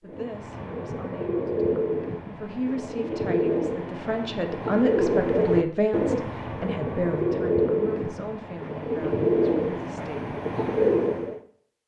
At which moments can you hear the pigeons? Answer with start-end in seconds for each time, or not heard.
0.1-11.4.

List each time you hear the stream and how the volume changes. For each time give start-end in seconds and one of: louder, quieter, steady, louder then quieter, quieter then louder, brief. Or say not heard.
not heard.